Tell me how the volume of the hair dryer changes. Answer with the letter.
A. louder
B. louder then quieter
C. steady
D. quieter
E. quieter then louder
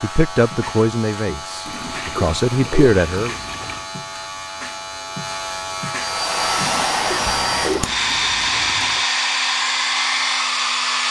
C.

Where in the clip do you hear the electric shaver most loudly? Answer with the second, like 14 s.
6 s.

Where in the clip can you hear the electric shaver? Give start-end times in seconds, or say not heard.
0.0-6.8.